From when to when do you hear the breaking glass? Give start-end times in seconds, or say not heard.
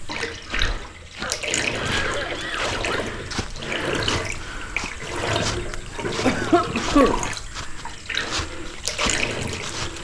not heard.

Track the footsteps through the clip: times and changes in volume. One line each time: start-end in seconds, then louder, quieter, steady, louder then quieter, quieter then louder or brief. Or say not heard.
0.0-9.9 steady.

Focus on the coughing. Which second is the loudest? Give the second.
7 s.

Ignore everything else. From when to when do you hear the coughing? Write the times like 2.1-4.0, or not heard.
1.2-3.1, 6.2-7.2.